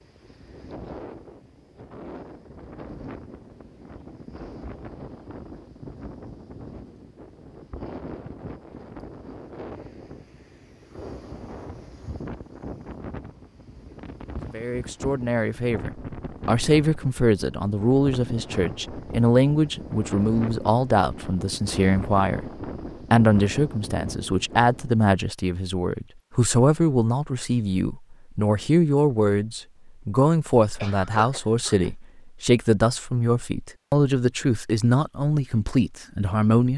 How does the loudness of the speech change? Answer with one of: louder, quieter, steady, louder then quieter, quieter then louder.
steady.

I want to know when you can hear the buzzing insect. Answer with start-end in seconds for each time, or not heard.
not heard.